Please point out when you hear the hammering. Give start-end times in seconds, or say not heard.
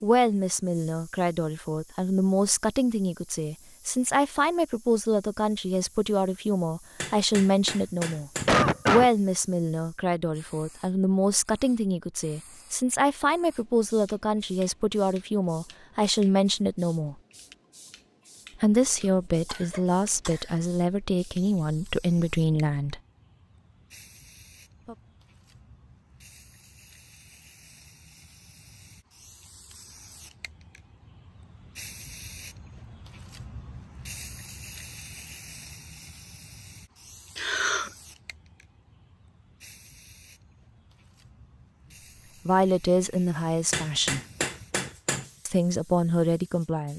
7.0-8.8, 43.7-45.3.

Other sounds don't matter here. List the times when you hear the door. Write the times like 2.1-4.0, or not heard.
not heard.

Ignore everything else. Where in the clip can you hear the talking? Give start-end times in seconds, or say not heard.
0.0-17.1, 18.6-23.0, 42.5-44.2, 45.5-46.9.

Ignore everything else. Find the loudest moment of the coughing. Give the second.
9 s.